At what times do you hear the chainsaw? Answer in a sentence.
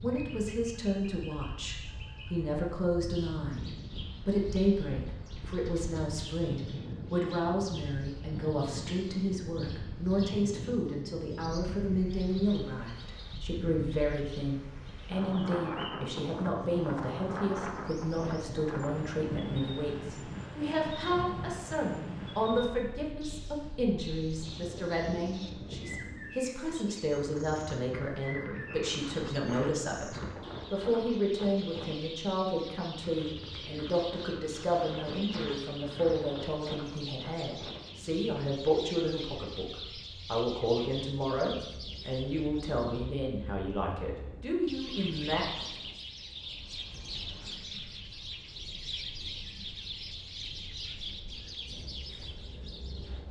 The chainsaw can't be heard in this clip.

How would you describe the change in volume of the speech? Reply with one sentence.
The loudness of the speech stays about the same.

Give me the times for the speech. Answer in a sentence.
You can hear the speech from 0.0 to 3.6 s and from 4.2 to 45.5 s.